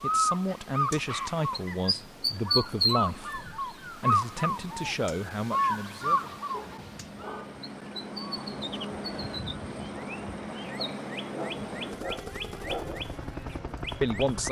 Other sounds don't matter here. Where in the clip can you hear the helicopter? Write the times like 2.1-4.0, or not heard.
0.0-14.4.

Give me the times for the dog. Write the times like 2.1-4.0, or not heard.
0.5-2.0, 6.5-7.6, 10.8-13.1.